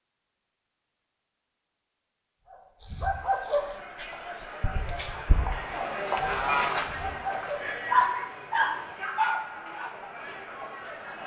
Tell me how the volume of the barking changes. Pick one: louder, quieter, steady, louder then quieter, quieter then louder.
quieter then louder.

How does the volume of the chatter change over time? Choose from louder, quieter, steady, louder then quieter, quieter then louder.
louder then quieter.